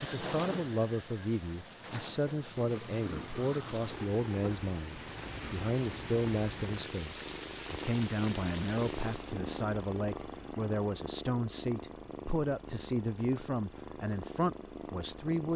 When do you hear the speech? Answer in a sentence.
You can hear the speech from 0.0 to 15.5 s.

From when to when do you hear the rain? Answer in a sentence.
The rain can be heard from 0.0 to 9.4 s.